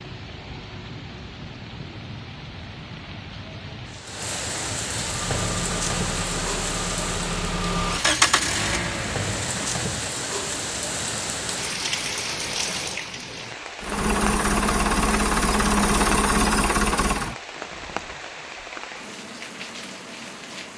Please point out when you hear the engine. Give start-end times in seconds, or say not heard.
5.0-9.8, 13.8-17.4.